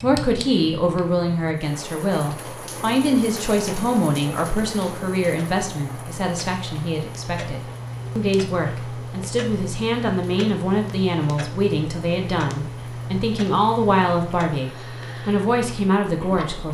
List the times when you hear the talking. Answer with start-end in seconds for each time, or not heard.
0.0-16.6.